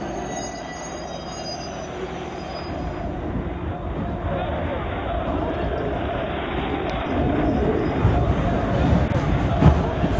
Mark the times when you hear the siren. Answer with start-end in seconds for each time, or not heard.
not heard.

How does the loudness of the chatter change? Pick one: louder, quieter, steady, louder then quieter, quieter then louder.
louder.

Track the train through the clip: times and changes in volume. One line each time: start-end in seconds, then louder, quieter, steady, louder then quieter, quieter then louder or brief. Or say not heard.
0.0-10.1 louder.